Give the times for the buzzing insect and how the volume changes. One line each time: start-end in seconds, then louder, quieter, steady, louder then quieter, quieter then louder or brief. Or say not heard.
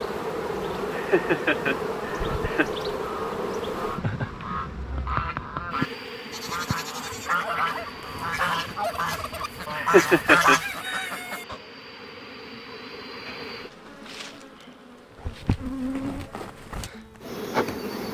0.0-18.0 quieter then louder.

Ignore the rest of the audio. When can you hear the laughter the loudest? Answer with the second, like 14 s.
10 s.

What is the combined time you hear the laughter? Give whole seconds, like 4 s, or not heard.
3 s.